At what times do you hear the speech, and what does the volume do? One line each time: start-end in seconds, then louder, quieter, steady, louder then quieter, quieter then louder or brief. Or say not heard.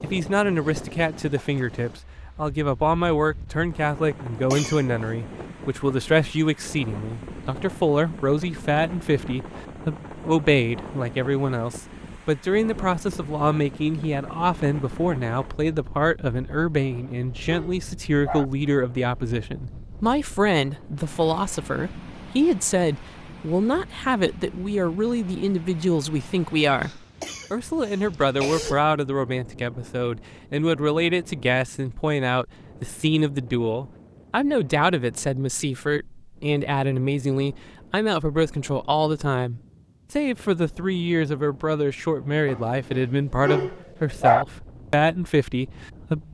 0.0-46.2 steady.